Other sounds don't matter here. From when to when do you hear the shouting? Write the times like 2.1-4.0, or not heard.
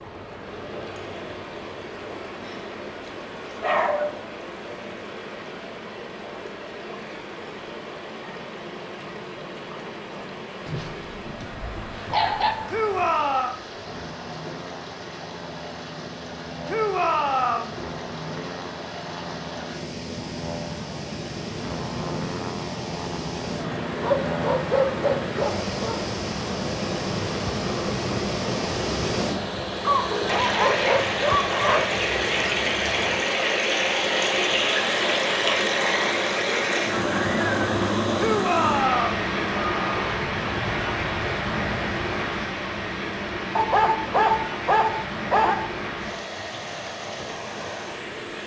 12.7-13.6, 16.6-17.8, 38.1-39.2.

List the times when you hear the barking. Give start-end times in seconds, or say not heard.
3.6-4.1, 10.7-12.6, 24.0-26.0, 29.9-31.9, 43.5-45.5.